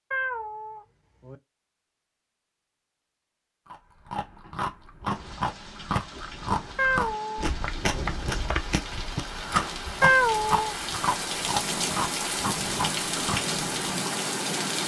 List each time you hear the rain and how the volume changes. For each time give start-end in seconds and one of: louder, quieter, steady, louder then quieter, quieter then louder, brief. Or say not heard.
5.0-14.8 louder.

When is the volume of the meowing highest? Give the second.
10 s.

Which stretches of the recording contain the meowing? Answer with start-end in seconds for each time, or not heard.
0.1-1.4, 6.8-8.1, 10.0-10.8.